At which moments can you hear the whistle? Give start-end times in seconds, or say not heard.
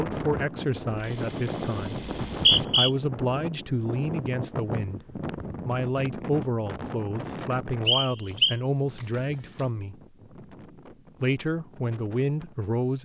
2.0-2.9, 7.8-8.6.